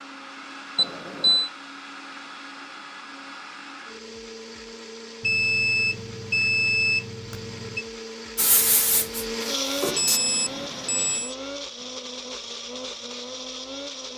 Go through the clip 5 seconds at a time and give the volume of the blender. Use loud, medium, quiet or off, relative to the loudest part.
medium, loud, loud.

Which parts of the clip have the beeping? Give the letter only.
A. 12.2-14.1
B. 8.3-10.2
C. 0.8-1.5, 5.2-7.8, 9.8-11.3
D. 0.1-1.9
C.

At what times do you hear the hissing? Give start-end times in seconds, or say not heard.
8.3-10.2.